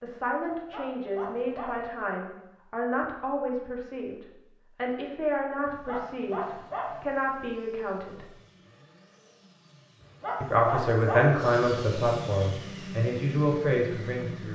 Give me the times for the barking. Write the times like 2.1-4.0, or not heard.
0.5-1.9, 5.7-7.0, 10.0-11.4.